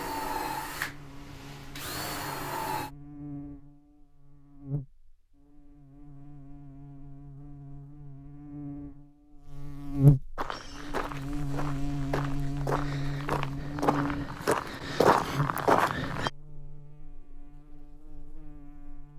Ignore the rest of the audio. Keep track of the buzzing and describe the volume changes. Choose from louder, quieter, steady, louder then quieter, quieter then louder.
louder then quieter.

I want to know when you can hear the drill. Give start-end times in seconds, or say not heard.
0.0-2.9.